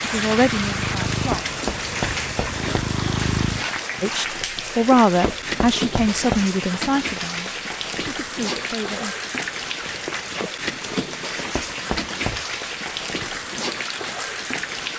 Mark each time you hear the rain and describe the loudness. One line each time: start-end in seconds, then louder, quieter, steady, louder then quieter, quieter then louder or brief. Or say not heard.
0.0-14.9 steady.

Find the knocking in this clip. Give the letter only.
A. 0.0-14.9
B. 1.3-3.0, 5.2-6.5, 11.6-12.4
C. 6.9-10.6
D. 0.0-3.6
B.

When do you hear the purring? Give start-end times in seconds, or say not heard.
0.0-3.6.